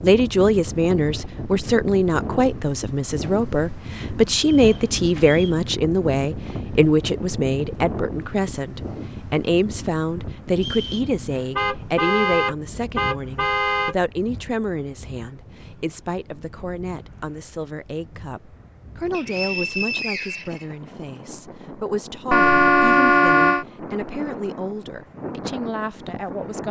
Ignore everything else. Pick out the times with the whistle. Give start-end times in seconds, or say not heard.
4.5-5.7, 10.6-11.1, 19.1-20.6.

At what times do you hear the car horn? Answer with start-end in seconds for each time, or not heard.
4.6-5.4, 11.6-13.9, 22.3-23.6.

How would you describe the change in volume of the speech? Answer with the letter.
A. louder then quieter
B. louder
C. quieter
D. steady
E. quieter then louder
C.